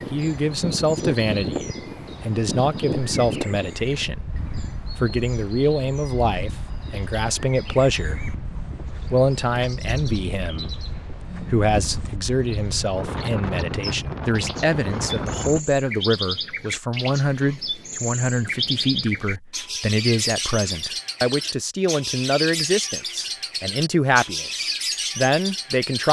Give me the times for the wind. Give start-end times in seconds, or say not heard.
0.0-15.6.